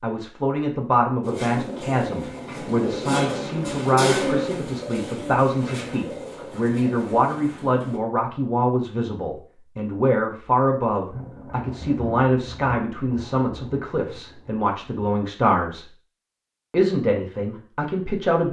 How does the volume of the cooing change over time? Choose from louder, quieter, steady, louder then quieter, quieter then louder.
louder then quieter.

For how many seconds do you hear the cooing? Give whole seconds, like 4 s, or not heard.
7 s.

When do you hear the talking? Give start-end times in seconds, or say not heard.
0.0-15.8, 16.7-18.4.